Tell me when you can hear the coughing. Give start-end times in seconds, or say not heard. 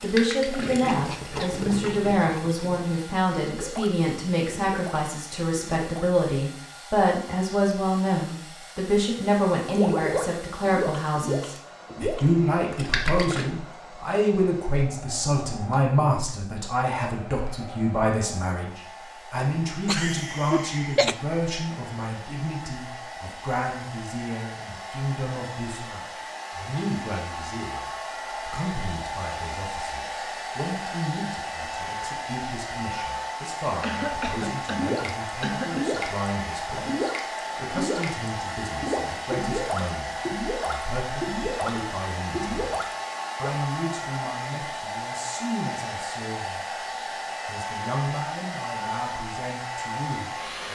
0.9-2.9, 19.9-21.1, 33.8-35.9.